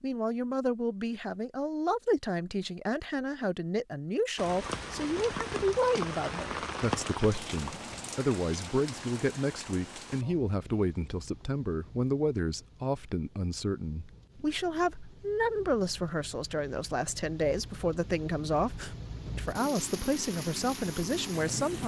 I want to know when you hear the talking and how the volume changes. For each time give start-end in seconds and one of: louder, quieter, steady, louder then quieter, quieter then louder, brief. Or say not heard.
0.0-21.8 steady.